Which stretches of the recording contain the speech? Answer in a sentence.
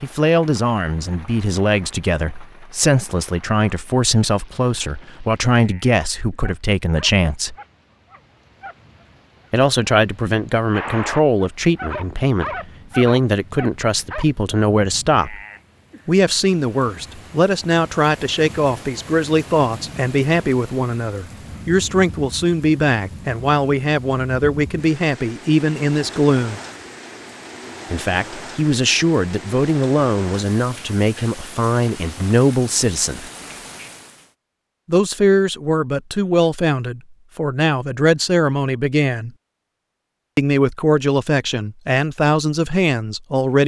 You can hear the speech from 0.0 to 7.5 s, from 9.5 to 15.4 s, from 16.1 to 26.6 s, from 27.9 to 33.3 s, from 34.9 to 39.3 s and from 40.4 to 43.6 s.